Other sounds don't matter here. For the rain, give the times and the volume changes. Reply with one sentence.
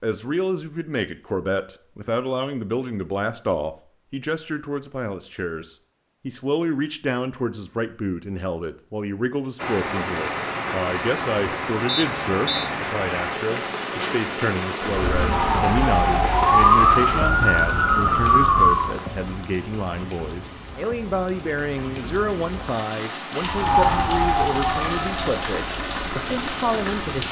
The rain can be heard from 9.6 to 27.2 s, getting quieter then louder.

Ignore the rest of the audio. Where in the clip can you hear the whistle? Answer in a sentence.
You can hear the whistle from 11.8 to 12.7 s.